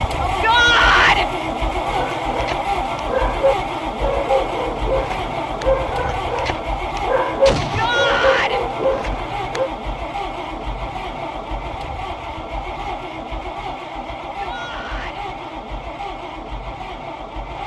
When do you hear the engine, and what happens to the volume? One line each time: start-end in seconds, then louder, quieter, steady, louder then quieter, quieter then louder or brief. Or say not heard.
0.0-17.6 quieter.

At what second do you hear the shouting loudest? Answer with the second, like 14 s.
1 s.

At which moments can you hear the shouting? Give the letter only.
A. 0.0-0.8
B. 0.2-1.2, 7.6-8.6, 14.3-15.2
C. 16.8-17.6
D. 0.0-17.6
B.